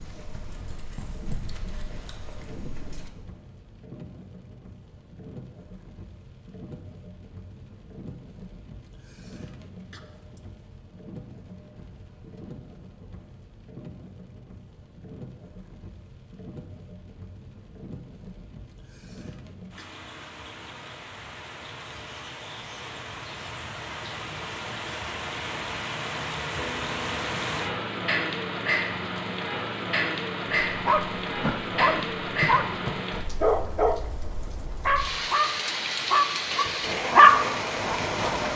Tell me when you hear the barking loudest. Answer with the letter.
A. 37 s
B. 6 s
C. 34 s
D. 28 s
A.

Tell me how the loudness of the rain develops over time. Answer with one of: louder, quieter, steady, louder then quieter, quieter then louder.
louder.